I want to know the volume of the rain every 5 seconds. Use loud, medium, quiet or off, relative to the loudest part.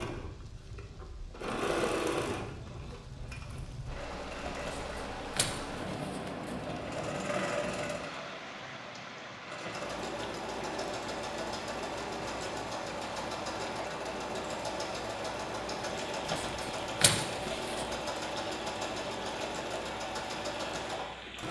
medium, loud, medium, medium, medium.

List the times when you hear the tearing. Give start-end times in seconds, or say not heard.
4.5-6.5, 16.2-17.9.